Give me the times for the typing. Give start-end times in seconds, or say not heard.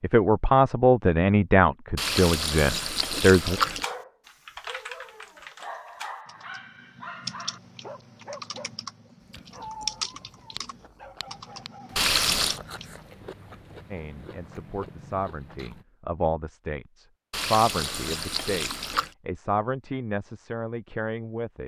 3.7-13.0.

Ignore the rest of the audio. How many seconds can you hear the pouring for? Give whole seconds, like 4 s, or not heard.
4 s.